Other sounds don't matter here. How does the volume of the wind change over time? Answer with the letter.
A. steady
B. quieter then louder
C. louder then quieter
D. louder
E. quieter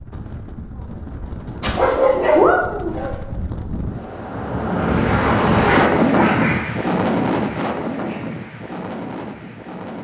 C.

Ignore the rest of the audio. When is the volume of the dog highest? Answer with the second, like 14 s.
2 s.